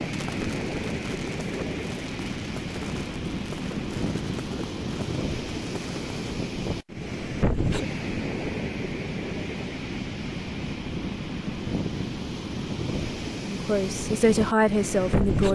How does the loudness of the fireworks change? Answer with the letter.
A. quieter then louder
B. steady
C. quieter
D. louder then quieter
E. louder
B.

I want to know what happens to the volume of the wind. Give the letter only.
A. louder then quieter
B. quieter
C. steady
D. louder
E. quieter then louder
C.